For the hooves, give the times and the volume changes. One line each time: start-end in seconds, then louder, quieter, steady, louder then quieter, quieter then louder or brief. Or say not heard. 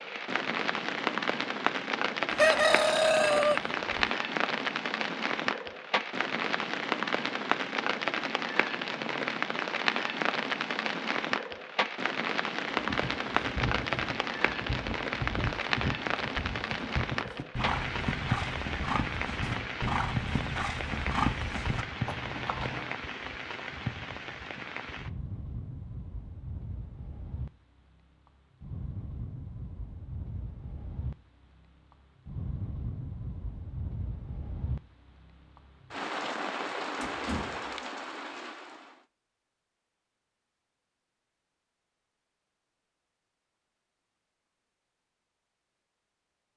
12.8-22.9 louder.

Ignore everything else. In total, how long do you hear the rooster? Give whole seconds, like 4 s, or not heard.
2 s.